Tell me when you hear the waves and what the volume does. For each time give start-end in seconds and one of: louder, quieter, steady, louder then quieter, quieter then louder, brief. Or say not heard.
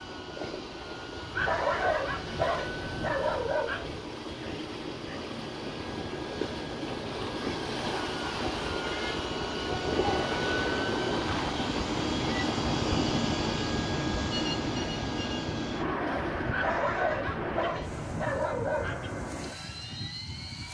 0.0-20.7 louder then quieter.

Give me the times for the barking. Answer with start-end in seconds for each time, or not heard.
1.3-4.0, 16.5-18.9.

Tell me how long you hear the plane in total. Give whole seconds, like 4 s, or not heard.
21 s.